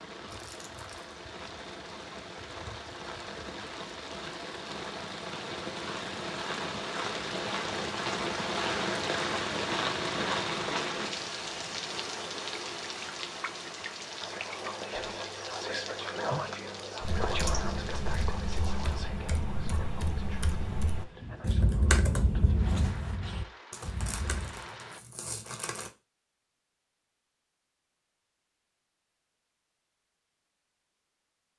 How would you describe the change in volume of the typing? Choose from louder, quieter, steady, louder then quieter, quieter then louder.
louder then quieter.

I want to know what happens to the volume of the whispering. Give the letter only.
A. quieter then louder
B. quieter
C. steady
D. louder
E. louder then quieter
B.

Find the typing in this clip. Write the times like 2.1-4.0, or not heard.
17.0-24.6.